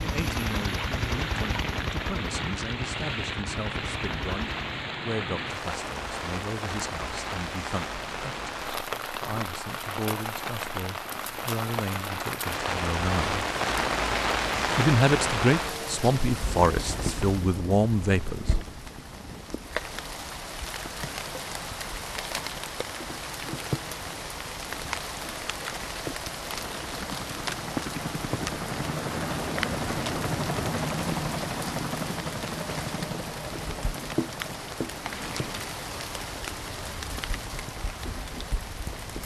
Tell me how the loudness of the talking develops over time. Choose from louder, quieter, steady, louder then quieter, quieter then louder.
louder.